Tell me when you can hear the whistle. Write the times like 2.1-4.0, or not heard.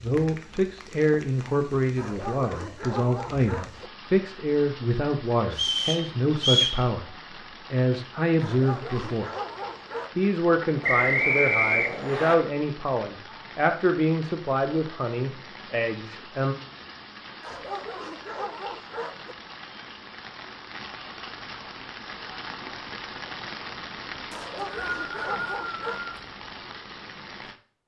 5.5-6.8, 10.8-12.3, 24.3-26.1.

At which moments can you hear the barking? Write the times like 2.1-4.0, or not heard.
1.9-3.9, 8.4-10.2, 17.4-19.4, 24.3-26.0.